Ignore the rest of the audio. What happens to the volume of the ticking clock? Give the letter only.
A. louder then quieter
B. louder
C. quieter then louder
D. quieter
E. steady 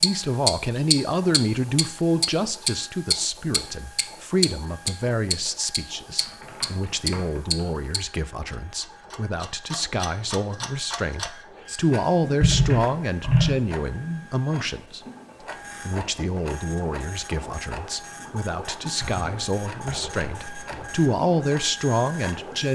D.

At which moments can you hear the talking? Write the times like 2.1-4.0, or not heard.
0.0-15.0, 15.8-22.7.